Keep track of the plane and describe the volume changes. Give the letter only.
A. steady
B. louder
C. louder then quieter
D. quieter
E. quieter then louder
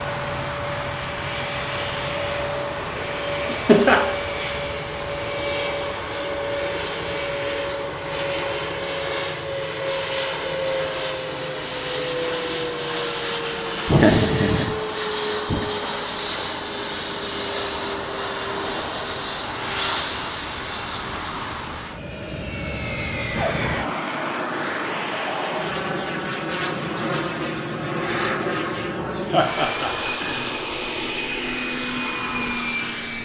A.